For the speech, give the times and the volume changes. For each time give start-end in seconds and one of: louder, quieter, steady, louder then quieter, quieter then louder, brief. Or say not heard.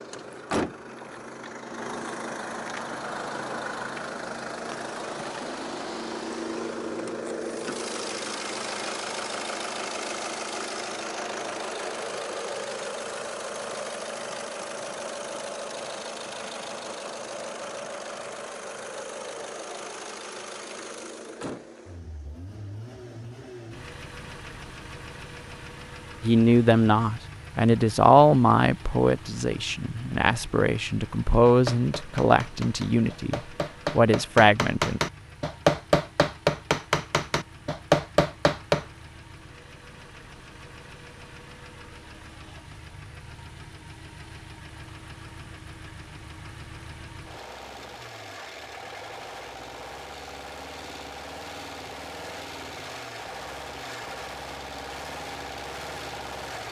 26.2-35.0 quieter then louder.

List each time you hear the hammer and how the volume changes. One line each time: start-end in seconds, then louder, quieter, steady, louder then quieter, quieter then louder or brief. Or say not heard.
31.4-38.9 louder.